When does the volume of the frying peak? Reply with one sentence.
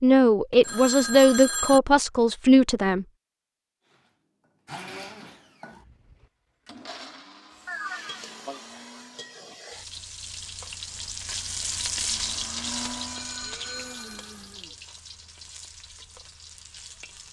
The volume of the frying peaks at 12 seconds.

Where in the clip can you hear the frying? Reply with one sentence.
You can hear the frying from 7.5 to 17.2 s.